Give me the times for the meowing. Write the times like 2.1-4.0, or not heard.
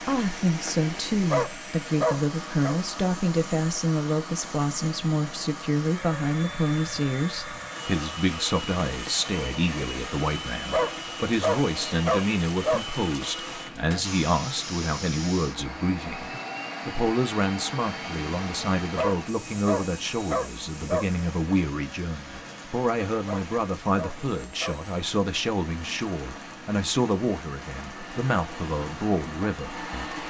not heard.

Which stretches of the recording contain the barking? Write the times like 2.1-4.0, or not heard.
1.2-2.8, 10.6-12.8, 18.9-21.1, 23.1-24.8.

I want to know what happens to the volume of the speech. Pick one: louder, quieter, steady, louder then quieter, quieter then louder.
steady.